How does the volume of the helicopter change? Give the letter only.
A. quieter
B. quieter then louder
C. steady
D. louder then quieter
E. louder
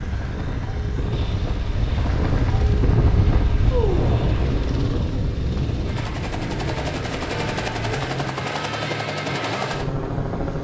E.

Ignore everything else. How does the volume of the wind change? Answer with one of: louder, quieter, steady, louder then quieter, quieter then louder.
louder then quieter.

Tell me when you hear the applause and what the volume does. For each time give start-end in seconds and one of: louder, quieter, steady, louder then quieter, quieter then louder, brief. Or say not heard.
not heard.